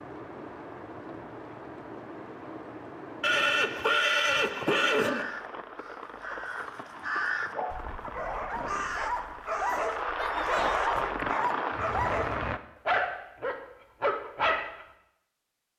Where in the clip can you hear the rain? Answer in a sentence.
You can hear the rain from 0.0 to 12.6 s.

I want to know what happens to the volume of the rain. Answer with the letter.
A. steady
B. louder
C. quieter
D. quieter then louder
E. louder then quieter
B.